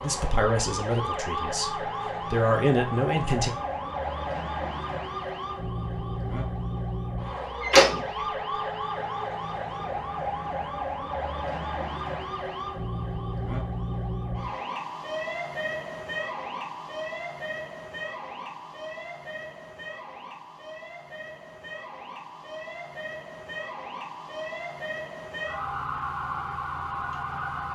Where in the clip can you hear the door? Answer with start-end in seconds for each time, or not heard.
7.6-8.0.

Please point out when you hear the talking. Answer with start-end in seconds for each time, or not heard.
0.0-3.5.